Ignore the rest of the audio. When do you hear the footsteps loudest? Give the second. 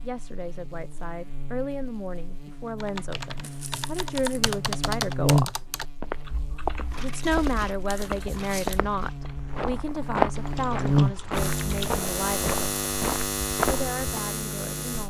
10 s.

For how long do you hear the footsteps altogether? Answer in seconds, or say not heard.
8 s.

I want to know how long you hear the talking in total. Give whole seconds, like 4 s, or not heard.
13 s.